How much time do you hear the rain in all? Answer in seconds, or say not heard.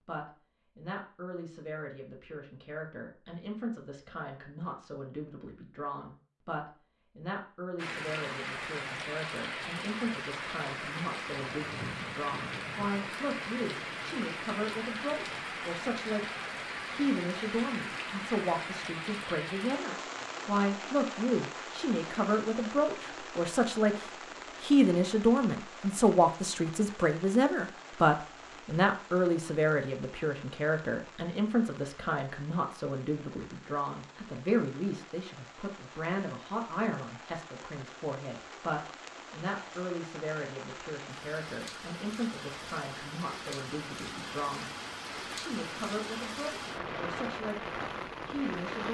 41 s.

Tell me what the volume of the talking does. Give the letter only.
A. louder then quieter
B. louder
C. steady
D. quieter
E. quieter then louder
A.